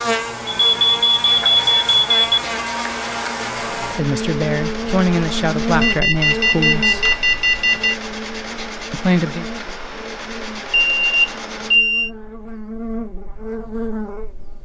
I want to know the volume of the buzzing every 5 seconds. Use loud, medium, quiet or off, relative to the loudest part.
loud, loud, medium.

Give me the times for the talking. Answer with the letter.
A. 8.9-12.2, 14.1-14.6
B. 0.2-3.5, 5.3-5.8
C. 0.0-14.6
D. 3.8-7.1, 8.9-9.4
D.